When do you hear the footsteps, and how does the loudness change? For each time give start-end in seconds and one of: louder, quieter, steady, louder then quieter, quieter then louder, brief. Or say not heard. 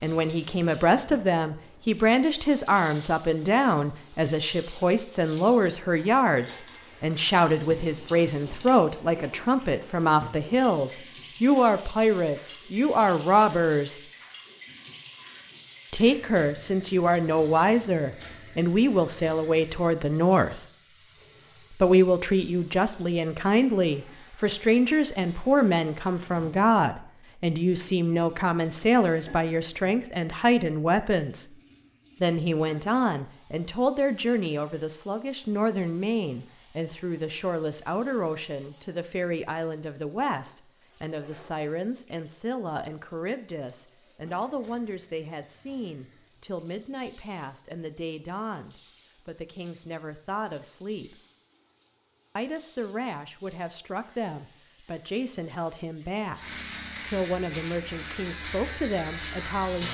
not heard.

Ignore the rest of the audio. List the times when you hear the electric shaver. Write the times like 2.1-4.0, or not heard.
56.4-59.8.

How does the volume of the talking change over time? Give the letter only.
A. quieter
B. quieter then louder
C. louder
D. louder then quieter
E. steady
A.